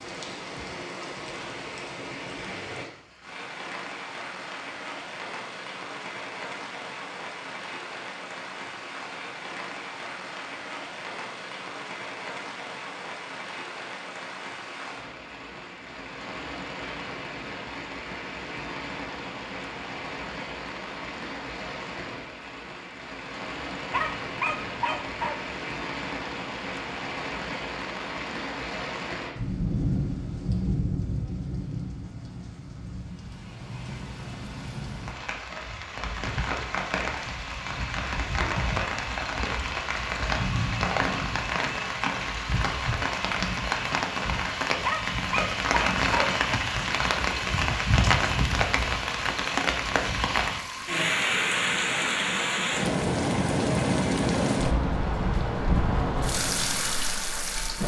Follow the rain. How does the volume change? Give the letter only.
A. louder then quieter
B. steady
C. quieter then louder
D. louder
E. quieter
D.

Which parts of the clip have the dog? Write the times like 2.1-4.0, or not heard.
23.9-25.4, 44.8-46.4.